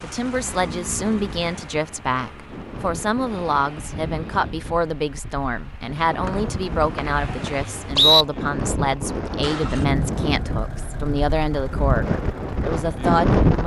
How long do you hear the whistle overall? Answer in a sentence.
The whistle can be heard for 2 seconds in total.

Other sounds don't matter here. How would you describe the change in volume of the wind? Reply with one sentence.
The volume of the wind goes up.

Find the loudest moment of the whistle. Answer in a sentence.
The volume of the whistle peaks at 8 seconds.